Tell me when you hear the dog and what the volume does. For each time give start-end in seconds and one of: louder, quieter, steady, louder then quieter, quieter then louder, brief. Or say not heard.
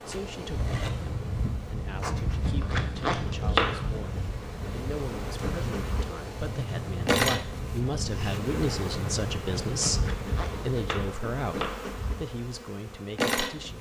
not heard.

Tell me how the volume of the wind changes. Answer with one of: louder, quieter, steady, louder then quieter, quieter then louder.
steady.